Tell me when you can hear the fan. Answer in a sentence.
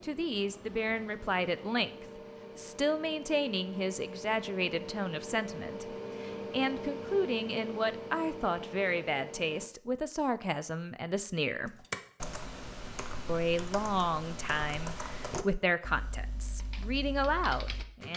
The fan can be heard from 0.0 to 9.7 s.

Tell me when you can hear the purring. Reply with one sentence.
The purring can't be heard in this clip.